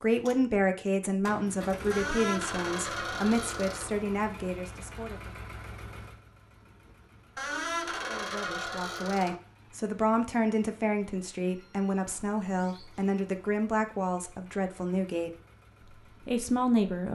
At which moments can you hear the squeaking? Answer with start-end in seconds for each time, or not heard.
1.9-3.9, 7.3-9.3, 11.4-13.1.